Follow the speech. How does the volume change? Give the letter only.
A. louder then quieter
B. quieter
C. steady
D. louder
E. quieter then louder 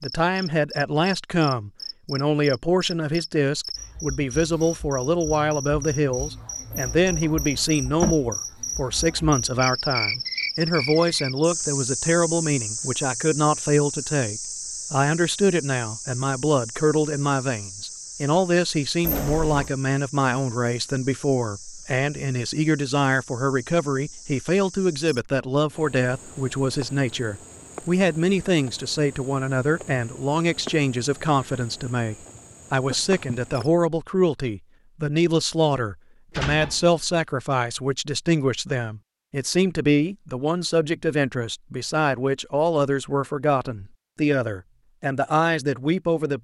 C.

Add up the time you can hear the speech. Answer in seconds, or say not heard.
46 s.